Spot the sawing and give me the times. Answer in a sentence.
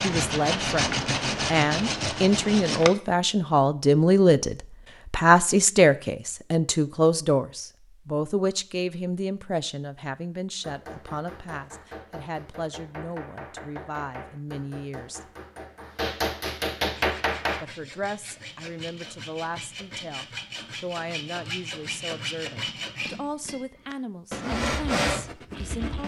The sawing can be heard from 0.0 to 3.0 s and from 16.9 to 26.0 s.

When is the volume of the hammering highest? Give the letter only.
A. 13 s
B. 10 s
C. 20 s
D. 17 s
D.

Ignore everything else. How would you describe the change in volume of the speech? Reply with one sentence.
The volume of the speech goes down.